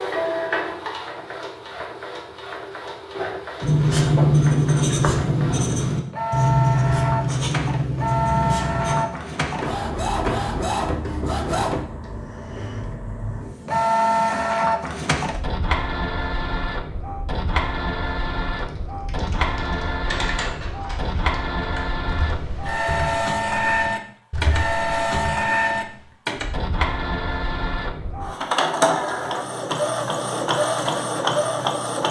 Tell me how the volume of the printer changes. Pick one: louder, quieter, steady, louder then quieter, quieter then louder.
louder.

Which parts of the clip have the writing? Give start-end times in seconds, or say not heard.
3.6-9.1.